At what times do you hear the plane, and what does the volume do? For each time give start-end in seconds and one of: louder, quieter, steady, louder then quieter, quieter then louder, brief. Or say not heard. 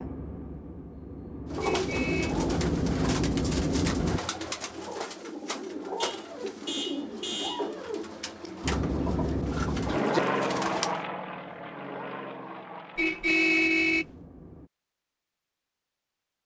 0.0-4.2 louder
8.6-14.7 quieter.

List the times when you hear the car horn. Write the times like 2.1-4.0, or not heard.
1.6-2.4, 6.0-7.7, 12.9-14.1.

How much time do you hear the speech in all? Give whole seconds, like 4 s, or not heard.
not heard.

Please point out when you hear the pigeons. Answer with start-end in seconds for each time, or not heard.
1.5-11.0.